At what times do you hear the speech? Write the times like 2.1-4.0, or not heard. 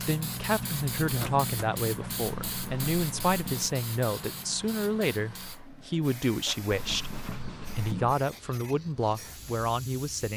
0.0-7.1, 7.8-10.3.